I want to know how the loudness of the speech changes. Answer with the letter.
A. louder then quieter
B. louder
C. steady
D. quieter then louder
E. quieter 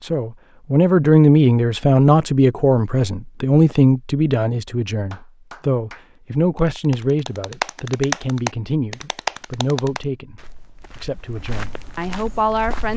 E.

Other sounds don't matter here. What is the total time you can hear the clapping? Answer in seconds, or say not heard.
5 s.